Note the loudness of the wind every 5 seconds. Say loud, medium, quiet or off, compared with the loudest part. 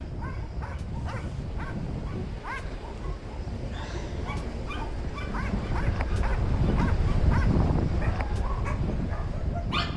medium, loud.